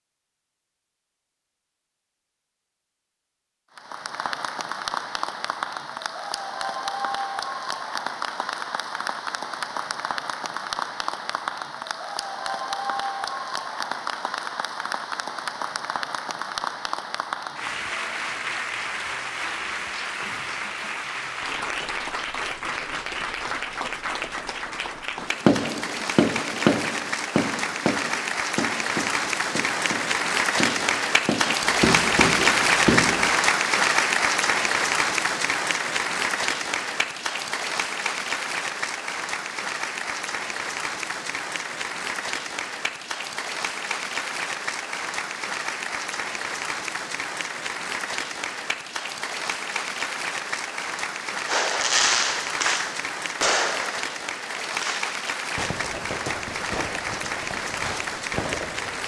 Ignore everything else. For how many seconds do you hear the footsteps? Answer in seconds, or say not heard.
not heard.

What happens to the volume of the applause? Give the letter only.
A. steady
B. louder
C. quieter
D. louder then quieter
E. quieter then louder
D.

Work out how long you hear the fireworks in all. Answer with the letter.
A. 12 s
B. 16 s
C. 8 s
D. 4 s
B.